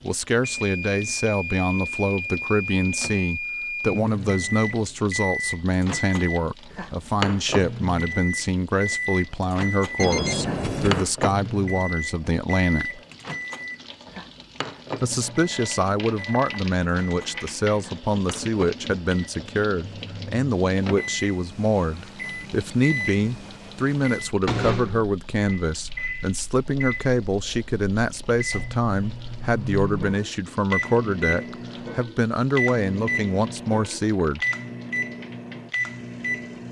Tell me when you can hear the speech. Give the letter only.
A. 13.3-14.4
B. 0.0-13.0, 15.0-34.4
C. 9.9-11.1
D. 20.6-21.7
B.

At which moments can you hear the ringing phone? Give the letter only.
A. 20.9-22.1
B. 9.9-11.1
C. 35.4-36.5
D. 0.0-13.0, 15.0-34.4
B.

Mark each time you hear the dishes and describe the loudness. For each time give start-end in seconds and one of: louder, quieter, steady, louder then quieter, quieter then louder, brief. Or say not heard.
not heard.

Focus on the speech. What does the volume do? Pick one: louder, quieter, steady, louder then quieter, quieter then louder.
steady.